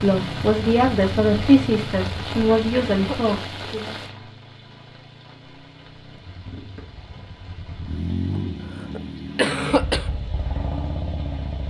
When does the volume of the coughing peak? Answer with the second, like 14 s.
10 s.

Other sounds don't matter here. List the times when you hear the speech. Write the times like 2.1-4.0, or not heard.
0.0-4.0.